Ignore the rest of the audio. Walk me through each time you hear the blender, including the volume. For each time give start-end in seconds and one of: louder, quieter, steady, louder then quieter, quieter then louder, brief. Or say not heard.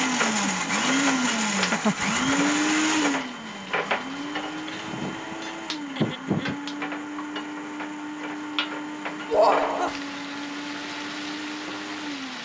0.0-12.3 quieter.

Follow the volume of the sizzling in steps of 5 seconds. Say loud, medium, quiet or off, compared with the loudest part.
loud, medium, medium.